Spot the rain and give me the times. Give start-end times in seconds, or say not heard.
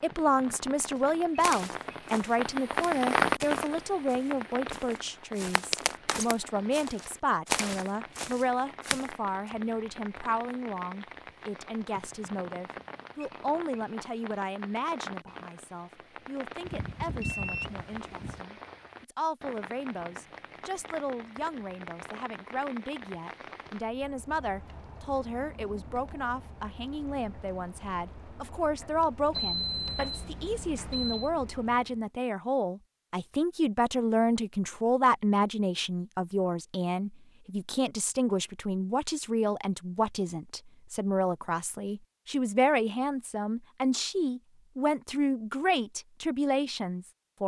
0.0-32.1.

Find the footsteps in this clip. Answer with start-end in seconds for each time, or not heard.
1.4-9.1.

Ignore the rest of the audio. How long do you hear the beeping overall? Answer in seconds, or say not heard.
4 s.